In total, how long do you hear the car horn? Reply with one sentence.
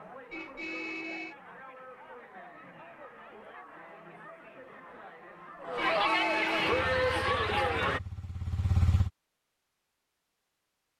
You can hear the car horn for 2 seconds altogether.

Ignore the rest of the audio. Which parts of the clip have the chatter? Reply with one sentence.
You can hear the chatter from 0.0 to 8.0 s.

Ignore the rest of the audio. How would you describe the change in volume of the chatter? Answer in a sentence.
The loudness of the chatter goes up.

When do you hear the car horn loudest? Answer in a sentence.
The volume of the car horn peaks at 6 seconds.